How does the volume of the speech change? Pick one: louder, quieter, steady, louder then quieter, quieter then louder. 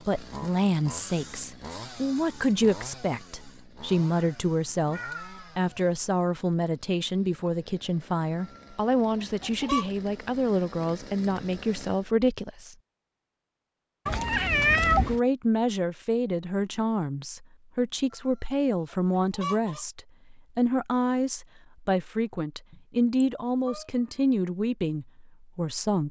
steady.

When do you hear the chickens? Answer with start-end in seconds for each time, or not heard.
8.4-9.8, 19.1-19.9.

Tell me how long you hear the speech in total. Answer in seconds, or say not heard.
24 s.